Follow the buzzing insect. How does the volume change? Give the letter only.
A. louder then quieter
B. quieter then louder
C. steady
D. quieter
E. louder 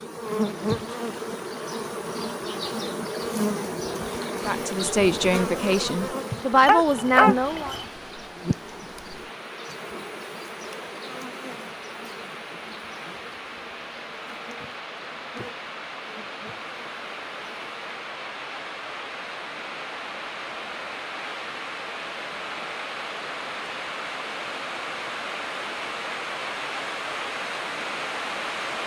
D.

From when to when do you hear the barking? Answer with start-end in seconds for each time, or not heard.
6.7-7.8.